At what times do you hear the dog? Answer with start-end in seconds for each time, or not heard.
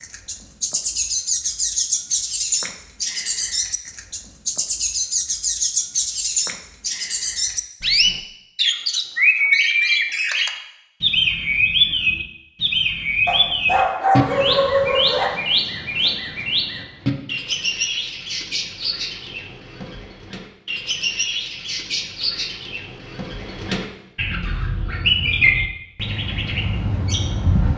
13.2-15.3.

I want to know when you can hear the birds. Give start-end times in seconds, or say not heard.
0.0-27.7.